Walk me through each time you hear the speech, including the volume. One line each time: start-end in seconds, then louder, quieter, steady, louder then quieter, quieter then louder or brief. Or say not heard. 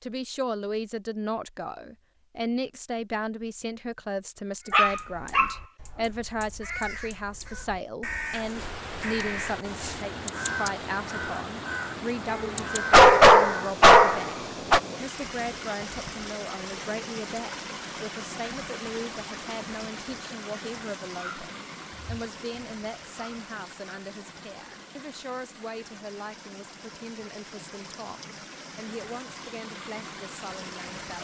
0.0-31.1 quieter.